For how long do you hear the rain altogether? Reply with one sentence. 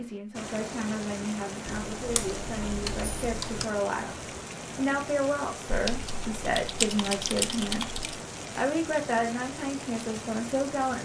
The rain can be heard for 11 seconds in total.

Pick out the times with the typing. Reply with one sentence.
You can hear the typing from 1.6 to 3.6 s and from 5.7 to 8.2 s.